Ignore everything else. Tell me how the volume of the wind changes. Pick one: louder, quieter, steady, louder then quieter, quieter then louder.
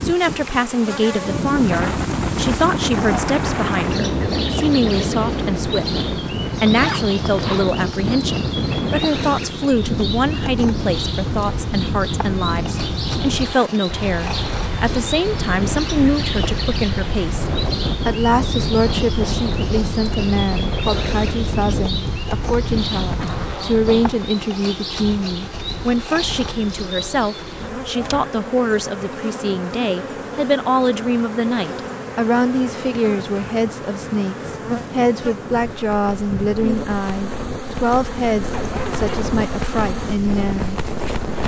quieter then louder.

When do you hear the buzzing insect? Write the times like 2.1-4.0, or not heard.
0.0-41.4.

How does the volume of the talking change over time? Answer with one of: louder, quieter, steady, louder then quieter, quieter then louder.
steady.